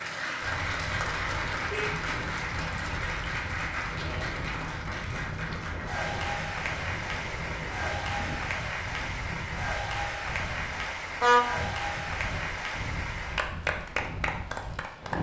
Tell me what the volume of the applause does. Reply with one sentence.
The loudness of the applause stays about the same.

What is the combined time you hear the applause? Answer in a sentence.
The applause can be heard for 15 seconds in total.